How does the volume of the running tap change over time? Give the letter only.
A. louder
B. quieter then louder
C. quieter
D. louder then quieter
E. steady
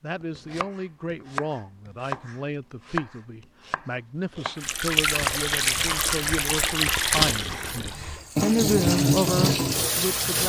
E.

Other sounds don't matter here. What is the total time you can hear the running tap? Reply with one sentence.
You can hear the running tap for 6 seconds altogether.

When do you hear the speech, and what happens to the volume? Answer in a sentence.
The speech can be heard from 0.0 to 10.4 s, getting louder.